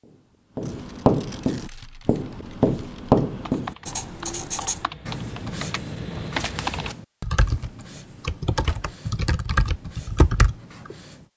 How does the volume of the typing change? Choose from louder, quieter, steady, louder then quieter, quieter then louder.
louder.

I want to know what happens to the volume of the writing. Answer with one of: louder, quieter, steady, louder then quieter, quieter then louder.
quieter.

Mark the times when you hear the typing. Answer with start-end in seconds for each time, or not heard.
1.6-10.9.